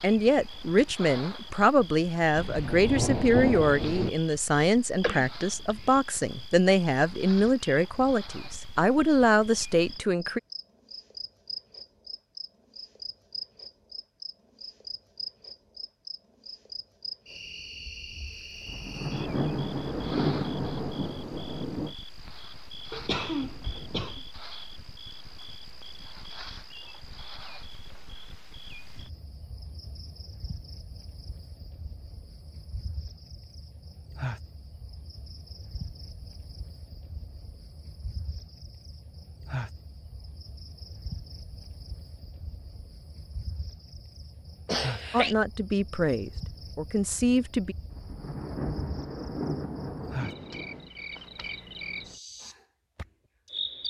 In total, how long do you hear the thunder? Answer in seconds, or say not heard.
8 s.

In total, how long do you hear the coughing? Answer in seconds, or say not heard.
3 s.